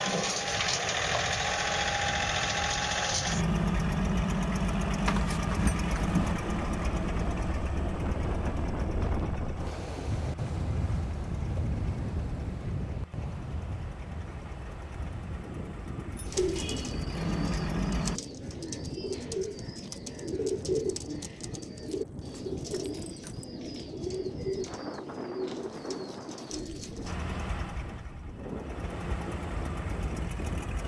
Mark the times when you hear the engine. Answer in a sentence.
The engine can be heard from 0.0 to 18.2 s and from 27.1 to 30.8 s.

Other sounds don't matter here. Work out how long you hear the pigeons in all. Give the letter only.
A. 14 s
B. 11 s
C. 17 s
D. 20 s
B.